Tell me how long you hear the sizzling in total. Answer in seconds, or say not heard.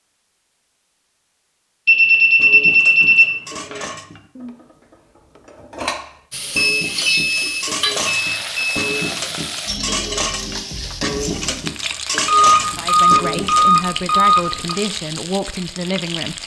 10 s.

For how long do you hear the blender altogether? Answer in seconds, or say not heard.
not heard.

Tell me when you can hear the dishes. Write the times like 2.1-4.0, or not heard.
2.4-13.8.